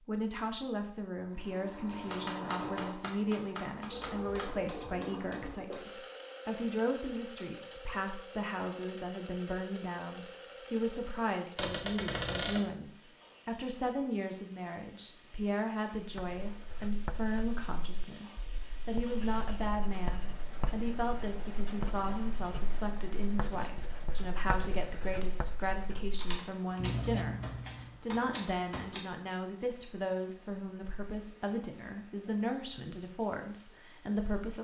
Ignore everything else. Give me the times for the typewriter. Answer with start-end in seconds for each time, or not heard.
2.0-4.5, 11.6-12.7, 26.1-29.1.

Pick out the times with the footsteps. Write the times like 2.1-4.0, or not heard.
not heard.